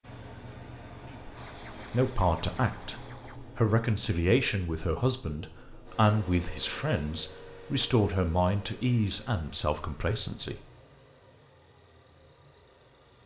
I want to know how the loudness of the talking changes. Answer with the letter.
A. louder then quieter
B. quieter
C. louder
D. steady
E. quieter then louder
D.